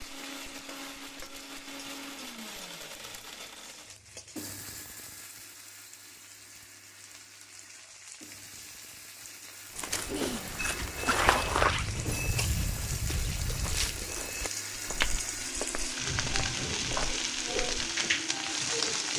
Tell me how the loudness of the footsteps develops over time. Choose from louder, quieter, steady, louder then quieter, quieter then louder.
quieter.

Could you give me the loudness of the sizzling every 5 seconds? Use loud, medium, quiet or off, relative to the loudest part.
quiet, quiet, medium, loud.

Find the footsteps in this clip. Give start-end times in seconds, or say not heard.
9.8-17.9.